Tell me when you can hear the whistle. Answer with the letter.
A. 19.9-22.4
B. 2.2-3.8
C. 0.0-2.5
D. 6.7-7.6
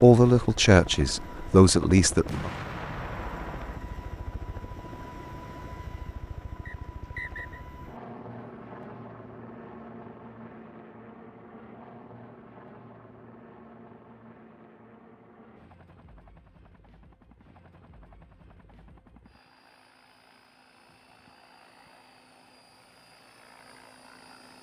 D.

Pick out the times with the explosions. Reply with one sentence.
The explosions can be heard from 2.2 to 3.8 s.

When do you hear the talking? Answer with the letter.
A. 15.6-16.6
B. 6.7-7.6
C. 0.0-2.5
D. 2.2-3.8
C.